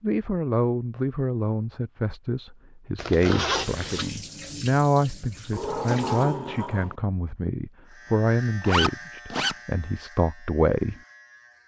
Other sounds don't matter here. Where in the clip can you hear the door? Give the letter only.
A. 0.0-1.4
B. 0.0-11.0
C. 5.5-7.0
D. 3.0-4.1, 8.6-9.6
C.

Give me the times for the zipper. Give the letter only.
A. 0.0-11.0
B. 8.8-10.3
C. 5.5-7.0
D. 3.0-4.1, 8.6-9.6
D.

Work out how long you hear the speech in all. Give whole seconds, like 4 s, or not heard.
11 s.